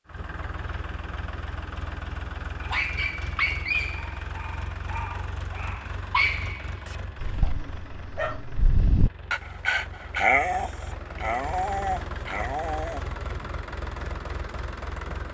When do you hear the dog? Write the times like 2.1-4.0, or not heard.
2.6-13.0.